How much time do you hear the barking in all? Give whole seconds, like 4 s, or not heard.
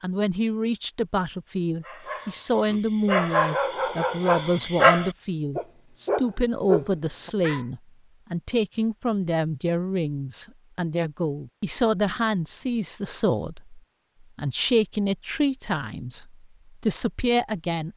6 s.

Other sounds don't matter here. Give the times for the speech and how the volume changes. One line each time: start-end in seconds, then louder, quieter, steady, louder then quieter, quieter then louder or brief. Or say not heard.
0.0-17.9 steady.